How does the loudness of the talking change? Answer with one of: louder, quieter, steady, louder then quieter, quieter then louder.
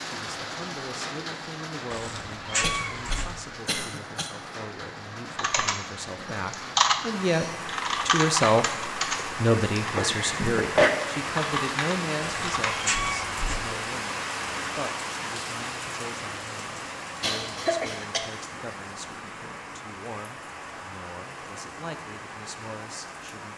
louder then quieter.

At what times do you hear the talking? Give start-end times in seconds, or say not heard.
0.0-7.5, 8.1-23.5.